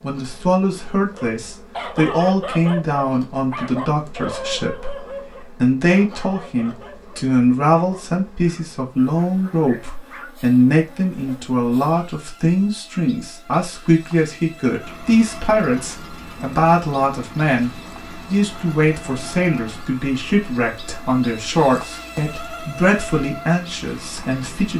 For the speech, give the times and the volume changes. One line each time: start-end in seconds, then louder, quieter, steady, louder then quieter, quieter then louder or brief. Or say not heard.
0.0-24.7 steady.